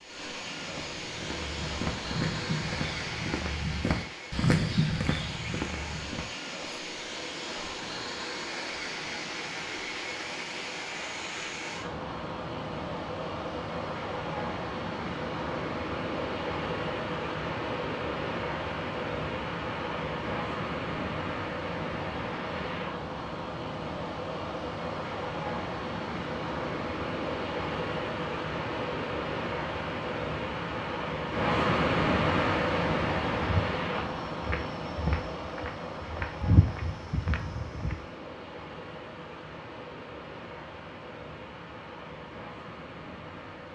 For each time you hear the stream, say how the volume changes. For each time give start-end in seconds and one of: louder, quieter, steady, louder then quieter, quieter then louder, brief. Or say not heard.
0.0-43.7 louder then quieter.